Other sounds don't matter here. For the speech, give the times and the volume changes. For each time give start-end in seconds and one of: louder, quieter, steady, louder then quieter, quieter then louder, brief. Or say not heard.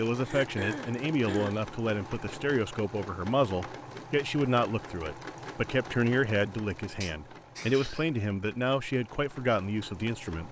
0.0-10.4 steady.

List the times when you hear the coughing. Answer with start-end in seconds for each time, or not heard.
0.2-1.6, 7.0-8.1.